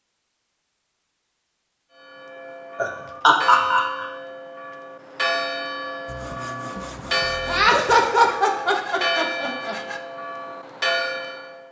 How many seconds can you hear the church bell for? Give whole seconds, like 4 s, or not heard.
10 s.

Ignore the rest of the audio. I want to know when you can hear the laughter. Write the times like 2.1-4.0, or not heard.
2.8-4.0, 7.5-9.8.